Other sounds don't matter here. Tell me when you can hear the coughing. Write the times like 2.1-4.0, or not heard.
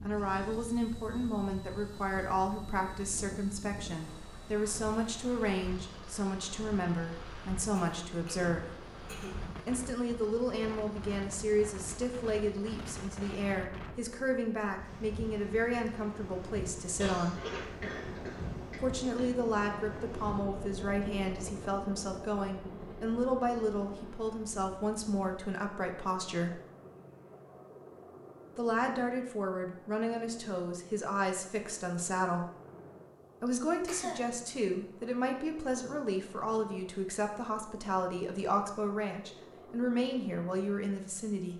7.8-9.6, 16.9-19.4, 33.5-34.2.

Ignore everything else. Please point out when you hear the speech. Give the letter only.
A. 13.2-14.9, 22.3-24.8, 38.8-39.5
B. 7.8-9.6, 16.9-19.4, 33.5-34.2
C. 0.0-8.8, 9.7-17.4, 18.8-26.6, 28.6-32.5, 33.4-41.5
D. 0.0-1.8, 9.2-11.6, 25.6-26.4
C.